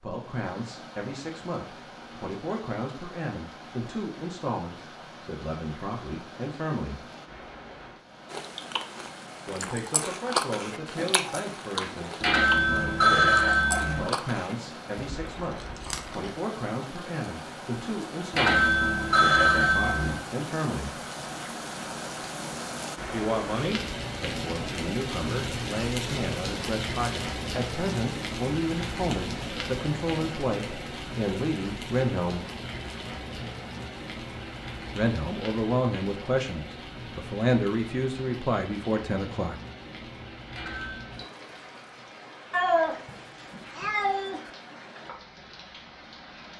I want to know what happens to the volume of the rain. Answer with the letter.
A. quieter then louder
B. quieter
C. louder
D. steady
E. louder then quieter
E.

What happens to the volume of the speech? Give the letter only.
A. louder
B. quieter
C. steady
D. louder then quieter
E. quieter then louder
A.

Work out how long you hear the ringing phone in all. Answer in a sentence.
The ringing phone can be heard for 4 seconds in total.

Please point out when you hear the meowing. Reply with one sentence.
The meowing can be heard from 42.5 to 44.4 s.